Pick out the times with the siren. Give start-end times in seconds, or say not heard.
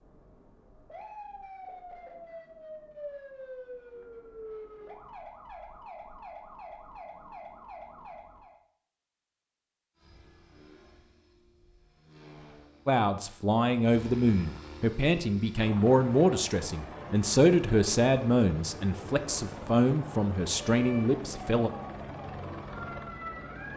0.0-8.6, 20.6-23.7.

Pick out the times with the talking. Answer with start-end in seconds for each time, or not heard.
12.8-21.7.